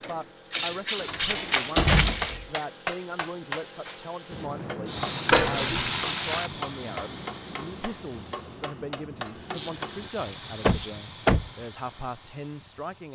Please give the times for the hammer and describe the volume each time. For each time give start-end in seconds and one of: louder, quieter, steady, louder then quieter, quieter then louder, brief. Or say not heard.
1.4-10.1 quieter.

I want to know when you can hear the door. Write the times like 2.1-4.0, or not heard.
1.0-2.5, 5.3-5.9, 10.6-11.5.